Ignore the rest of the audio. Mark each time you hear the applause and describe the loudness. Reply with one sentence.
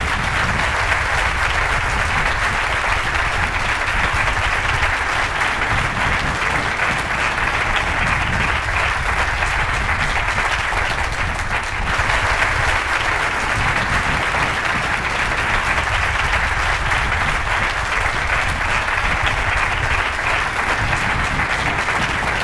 You can hear the applause from 0.0 to 22.3 s, at a steady volume.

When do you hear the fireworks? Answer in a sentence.
The fireworks can't be heard in this clip.